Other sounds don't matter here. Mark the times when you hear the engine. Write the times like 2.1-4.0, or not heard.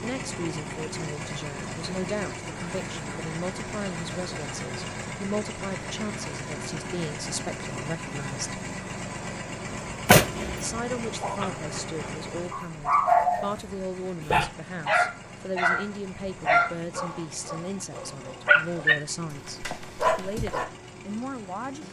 0.0-21.8.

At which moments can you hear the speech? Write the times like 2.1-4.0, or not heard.
0.0-8.6, 10.6-21.8.